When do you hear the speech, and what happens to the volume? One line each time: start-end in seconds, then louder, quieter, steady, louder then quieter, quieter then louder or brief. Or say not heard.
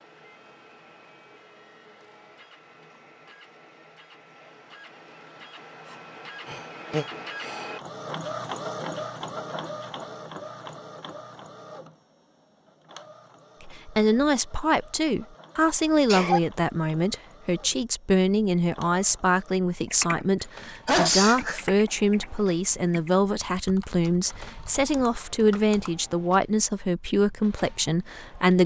13.6-28.6 steady.